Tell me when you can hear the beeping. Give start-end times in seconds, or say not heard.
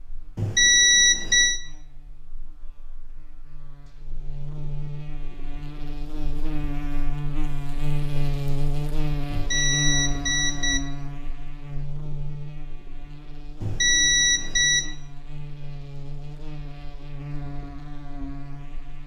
0.3-1.6, 9.3-10.8, 13.6-14.8.